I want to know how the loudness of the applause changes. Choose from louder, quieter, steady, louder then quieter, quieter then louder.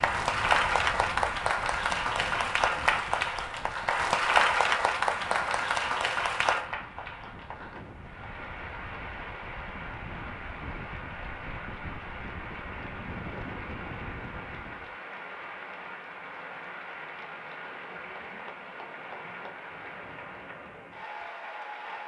quieter.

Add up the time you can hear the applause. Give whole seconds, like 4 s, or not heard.
22 s.